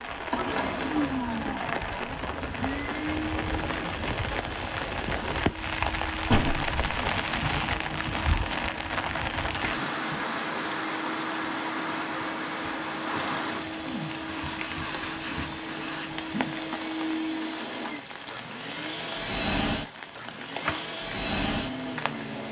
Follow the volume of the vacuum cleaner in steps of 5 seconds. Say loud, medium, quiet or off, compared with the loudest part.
loud, medium, loud, loud, loud.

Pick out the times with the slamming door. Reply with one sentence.
The slamming door can be heard from 6.3 to 7.0 s.